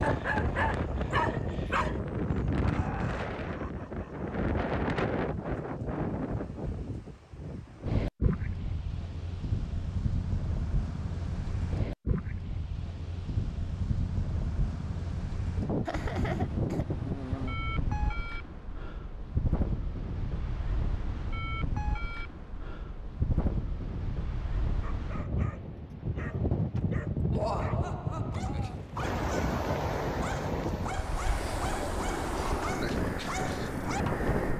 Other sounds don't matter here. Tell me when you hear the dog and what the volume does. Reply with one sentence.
The dog can be heard briefly from 0.0 to 2.0 s; and from 24.8 to 34.3 s, getting louder.